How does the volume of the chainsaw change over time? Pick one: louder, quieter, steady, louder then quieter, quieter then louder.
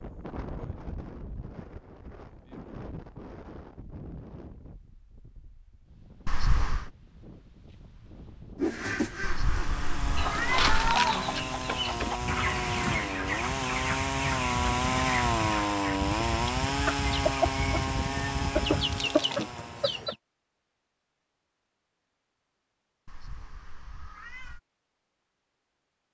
louder then quieter.